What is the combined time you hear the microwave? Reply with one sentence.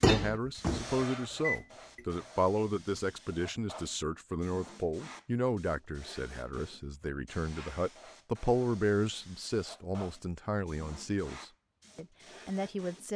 You can hear the microwave for 2 seconds altogether.